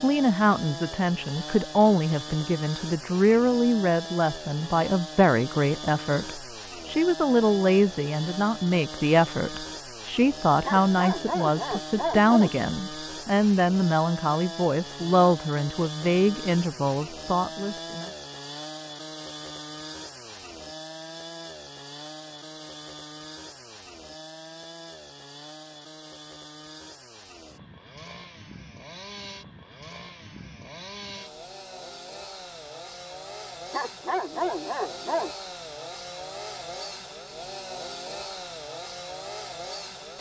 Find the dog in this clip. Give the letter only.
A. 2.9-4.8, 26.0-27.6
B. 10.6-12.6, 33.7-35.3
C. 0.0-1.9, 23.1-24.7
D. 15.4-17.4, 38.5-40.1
B.